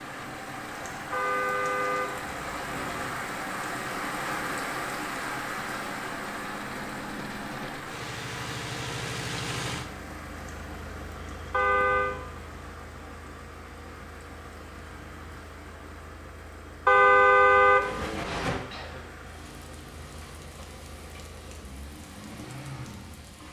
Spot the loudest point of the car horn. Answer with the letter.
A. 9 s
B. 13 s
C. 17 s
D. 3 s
C.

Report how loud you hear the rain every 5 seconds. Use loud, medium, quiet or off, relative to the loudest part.
loud, loud, quiet, quiet, quiet.